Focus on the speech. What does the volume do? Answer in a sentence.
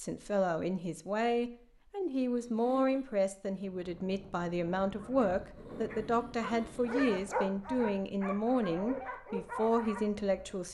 The volume of the speech stays about the same.